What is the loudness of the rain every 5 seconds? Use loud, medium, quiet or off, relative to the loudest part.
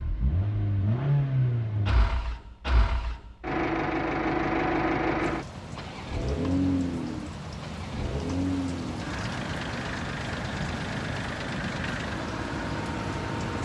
off, loud, loud.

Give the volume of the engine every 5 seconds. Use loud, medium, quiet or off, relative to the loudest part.
loud, loud, medium.